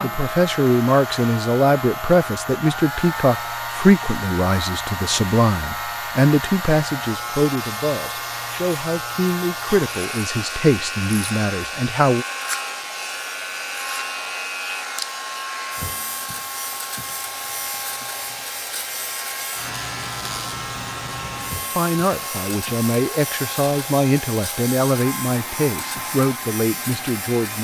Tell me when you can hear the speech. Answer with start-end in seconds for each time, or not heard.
0.0-12.2, 21.8-27.5.